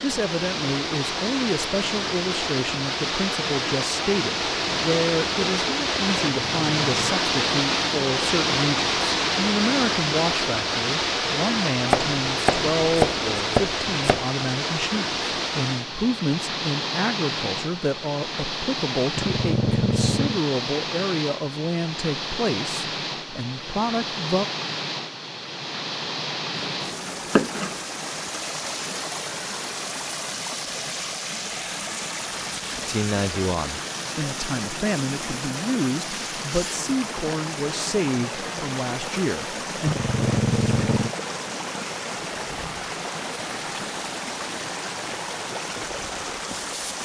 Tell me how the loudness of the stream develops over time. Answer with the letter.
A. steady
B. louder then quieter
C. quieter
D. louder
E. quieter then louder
C.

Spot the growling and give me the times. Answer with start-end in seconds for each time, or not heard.
6.3-7.0, 19.1-20.4, 39.9-41.1.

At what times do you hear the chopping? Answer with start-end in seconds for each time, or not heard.
11.9-14.2, 26.6-27.8.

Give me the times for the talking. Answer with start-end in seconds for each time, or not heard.
0.0-24.4, 32.9-40.0.